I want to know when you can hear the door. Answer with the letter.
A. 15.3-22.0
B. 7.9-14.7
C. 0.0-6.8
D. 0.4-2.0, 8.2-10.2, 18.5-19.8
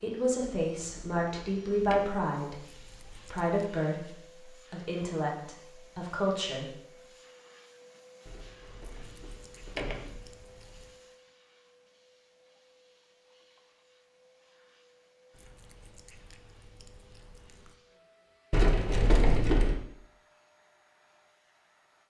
D.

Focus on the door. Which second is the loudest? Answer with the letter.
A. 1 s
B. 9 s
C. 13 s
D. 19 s
D.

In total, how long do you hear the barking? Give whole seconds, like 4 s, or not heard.
not heard.